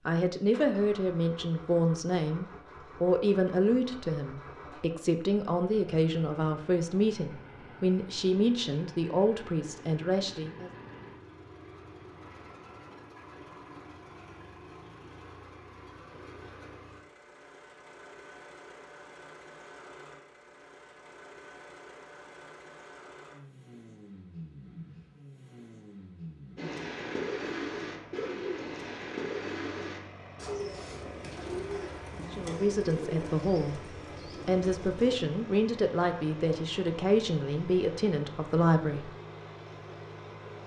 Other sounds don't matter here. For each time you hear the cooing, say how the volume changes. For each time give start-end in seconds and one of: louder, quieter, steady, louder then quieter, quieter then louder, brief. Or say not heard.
26.6-35.2 quieter.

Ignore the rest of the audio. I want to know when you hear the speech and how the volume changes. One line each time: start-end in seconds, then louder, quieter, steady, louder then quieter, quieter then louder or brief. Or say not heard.
0.1-10.7 steady
32.3-39.1 steady.